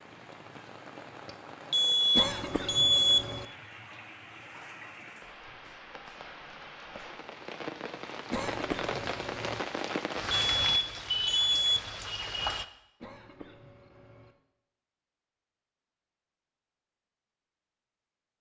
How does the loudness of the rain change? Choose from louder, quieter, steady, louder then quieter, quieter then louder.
louder.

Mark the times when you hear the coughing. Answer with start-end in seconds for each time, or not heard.
2.1-3.5, 8.3-9.7, 13.0-14.3.